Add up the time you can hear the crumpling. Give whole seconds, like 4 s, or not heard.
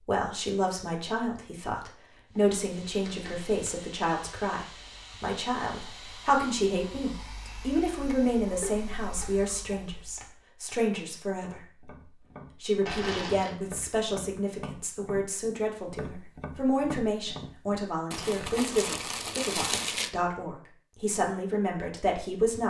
4 s.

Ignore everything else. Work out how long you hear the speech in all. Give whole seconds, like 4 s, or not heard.
22 s.